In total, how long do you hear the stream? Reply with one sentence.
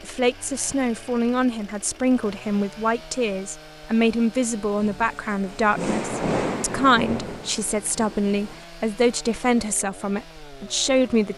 You can't hear the stream here.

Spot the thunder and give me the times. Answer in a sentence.
The thunder can be heard from 4.8 to 8.7 s.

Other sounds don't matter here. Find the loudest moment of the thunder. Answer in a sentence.
The loudest moment of the thunder is at 6 seconds.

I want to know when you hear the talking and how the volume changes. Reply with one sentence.
The talking can be heard from 0.0 to 11.3 s, at a steady volume.